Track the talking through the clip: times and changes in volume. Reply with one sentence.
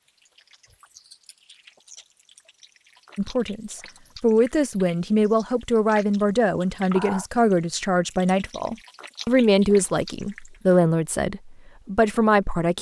You can hear the talking from 3.1 to 12.7 s, at a steady volume.